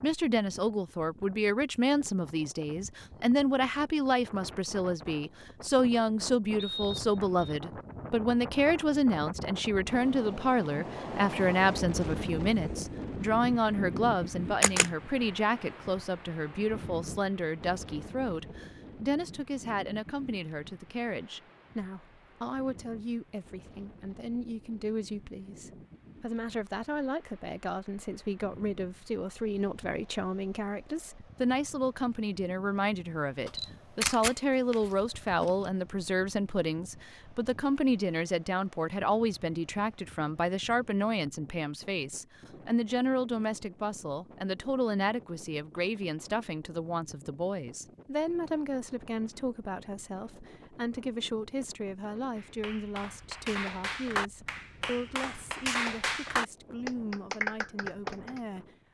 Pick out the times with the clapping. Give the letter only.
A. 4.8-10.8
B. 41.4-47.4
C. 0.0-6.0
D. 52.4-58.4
D.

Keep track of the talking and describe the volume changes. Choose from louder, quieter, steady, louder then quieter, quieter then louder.
quieter.